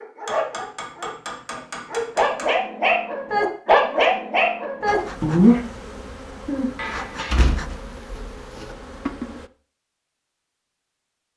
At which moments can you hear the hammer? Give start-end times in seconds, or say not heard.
0.2-2.5, 6.8-7.5.